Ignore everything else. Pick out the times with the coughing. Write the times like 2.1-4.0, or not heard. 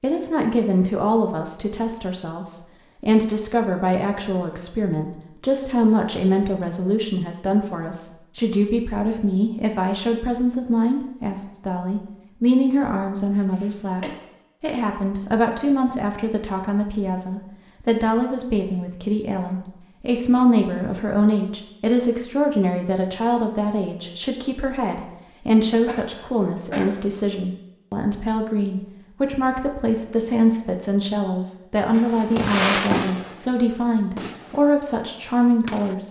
13.6-14.2, 25.8-26.9.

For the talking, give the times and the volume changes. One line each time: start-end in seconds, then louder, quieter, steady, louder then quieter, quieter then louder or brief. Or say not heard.
0.0-36.0 steady.